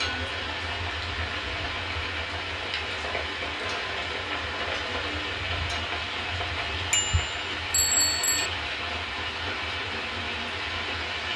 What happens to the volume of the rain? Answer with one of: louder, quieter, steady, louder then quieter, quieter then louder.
steady.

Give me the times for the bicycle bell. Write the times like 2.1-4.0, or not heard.
6.9-8.5.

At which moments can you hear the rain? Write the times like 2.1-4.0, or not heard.
0.0-11.3.